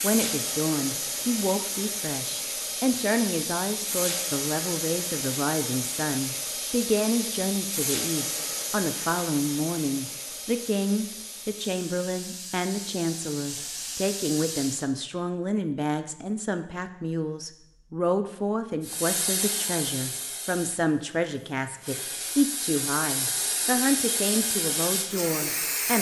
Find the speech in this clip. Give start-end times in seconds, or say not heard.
0.0-25.9.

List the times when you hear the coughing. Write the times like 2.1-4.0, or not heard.
not heard.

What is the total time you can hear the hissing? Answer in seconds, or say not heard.
22 s.